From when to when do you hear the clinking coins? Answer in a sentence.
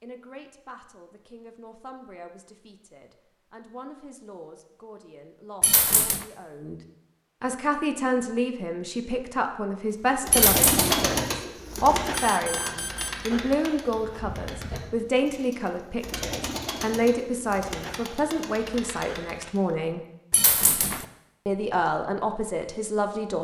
You can hear the clinking coins from 5.6 to 6.2 s, from 10.3 to 11.1 s and from 20.3 to 21.1 s.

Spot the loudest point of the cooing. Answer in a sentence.
The volume of the cooing peaks at 11 seconds.